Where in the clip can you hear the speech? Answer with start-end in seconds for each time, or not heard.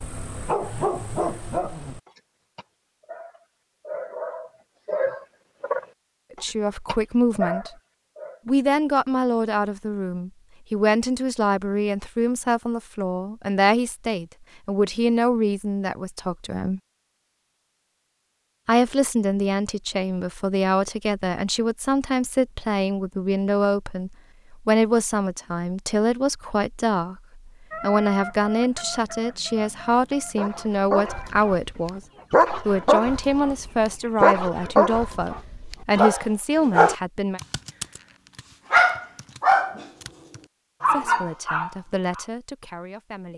6.3-7.7, 8.4-16.8, 18.6-32.0, 32.6-37.4, 40.9-43.3.